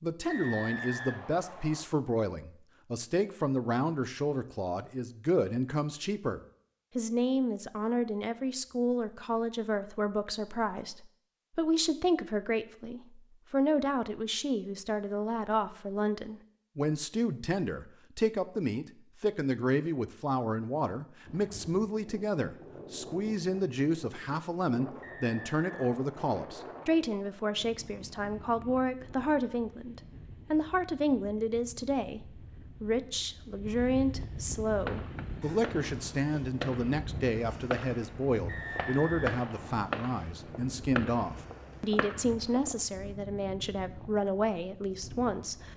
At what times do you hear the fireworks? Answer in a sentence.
The fireworks can be heard from 34.7 to 42.8 s.